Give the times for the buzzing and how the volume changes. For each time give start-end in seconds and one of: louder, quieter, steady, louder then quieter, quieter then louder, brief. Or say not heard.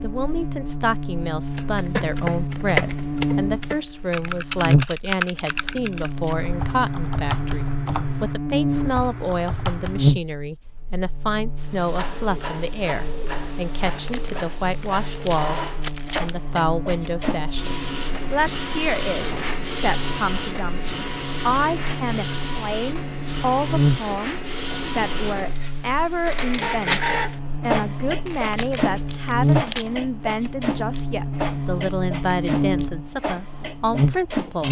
0.0-34.6 quieter then louder.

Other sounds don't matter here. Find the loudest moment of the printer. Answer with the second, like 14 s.
27 s.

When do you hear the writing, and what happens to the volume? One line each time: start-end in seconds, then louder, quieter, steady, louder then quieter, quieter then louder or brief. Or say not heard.
not heard.